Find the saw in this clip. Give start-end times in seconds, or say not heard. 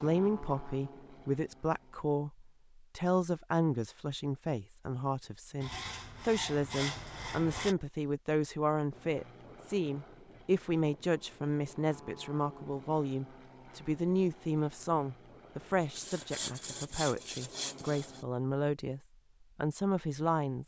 5.6-7.8, 15.9-18.2.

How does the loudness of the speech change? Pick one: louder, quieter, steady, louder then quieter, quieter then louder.
steady.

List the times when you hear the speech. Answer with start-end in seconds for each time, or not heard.
0.0-20.6.